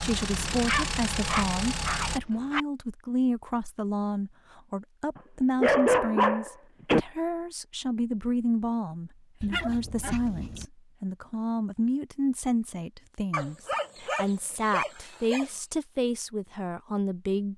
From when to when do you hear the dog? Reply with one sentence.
The dog can be heard from 0.3 to 2.6 s, from 5.2 to 7.0 s, from 9.4 to 10.7 s and from 13.3 to 15.4 s.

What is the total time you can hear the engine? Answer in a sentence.
You can hear the engine for 2 seconds altogether.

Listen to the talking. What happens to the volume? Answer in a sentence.
The loudness of the talking stays about the same.